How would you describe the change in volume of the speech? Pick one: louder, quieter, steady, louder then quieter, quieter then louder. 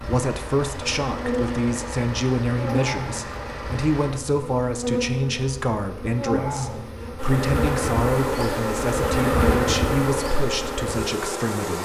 steady.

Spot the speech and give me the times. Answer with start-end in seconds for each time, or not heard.
0.0-11.8.